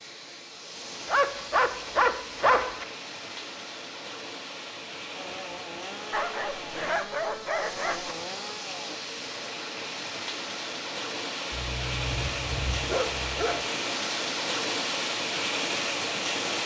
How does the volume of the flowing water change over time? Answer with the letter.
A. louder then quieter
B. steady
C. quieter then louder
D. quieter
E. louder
E.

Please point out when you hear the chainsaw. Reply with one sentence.
You can hear the chainsaw from 5.2 to 9.0 s.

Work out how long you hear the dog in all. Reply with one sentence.
The dog can be heard for 6 seconds in total.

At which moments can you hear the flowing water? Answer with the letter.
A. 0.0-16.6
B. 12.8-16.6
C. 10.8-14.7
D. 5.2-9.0
A.